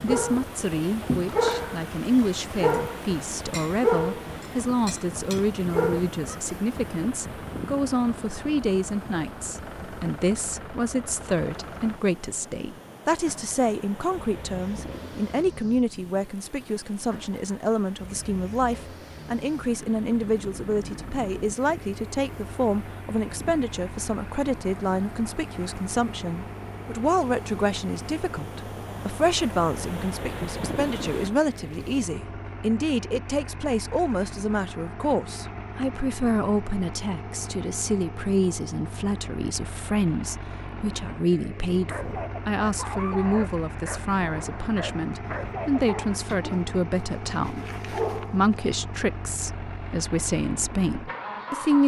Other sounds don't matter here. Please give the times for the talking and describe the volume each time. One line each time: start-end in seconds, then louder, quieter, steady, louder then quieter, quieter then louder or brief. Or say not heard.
0.0-51.8 steady.